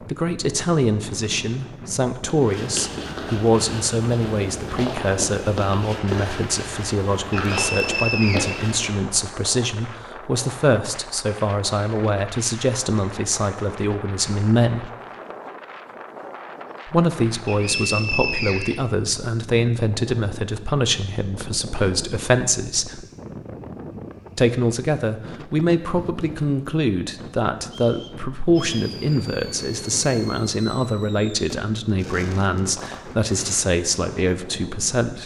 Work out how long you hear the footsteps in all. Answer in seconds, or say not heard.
7 s.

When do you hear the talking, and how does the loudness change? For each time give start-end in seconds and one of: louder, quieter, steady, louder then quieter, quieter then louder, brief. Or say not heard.
0.1-14.9 steady
16.9-23.1 steady
24.4-35.2 steady.